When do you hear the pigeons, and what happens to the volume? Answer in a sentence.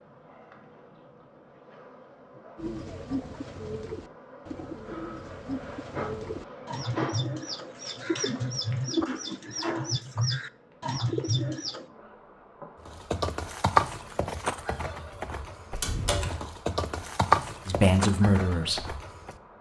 The pigeons can be heard from 2.5 to 11.8 s, getting louder.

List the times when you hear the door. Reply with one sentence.
The door can be heard from 15.7 to 16.4 s.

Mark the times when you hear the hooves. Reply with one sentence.
The hooves can be heard from 12.8 to 19.4 s.